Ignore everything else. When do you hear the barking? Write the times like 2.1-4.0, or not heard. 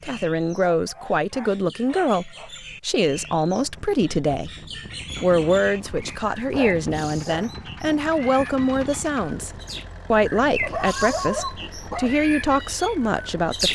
0.8-2.5, 5.8-7.5, 10.6-12.1.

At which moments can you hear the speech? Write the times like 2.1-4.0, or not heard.
0.0-4.5, 5.2-9.5, 10.1-13.7.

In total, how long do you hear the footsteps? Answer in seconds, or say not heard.
not heard.